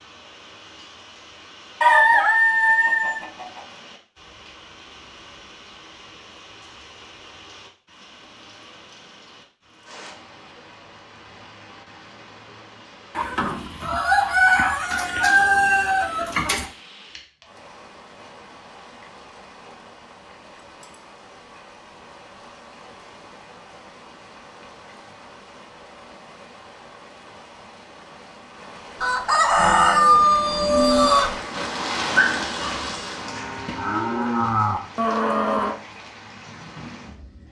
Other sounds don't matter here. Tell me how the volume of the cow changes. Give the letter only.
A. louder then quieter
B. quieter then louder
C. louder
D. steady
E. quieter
B.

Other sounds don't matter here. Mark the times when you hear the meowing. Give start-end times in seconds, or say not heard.
not heard.